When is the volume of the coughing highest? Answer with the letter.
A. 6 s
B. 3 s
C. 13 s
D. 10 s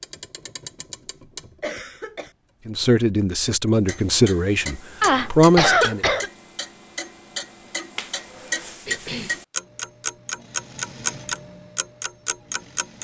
A.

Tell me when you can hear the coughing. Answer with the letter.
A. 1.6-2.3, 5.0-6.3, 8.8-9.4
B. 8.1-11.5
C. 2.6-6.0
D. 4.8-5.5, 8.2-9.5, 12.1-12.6
A.